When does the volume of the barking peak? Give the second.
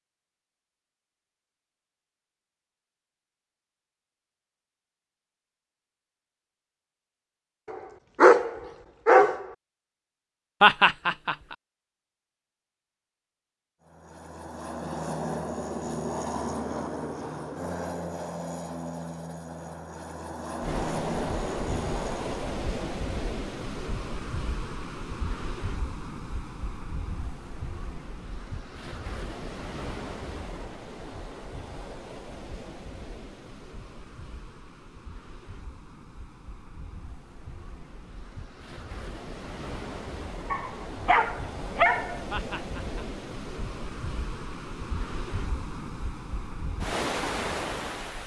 8 s.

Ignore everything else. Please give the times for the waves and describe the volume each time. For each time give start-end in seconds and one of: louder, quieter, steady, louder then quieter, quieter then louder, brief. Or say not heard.
20.6-48.2 quieter then louder.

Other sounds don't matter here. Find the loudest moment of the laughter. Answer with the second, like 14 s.
11 s.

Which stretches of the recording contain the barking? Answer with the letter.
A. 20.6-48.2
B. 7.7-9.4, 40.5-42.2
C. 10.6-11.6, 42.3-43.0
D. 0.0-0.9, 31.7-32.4
B.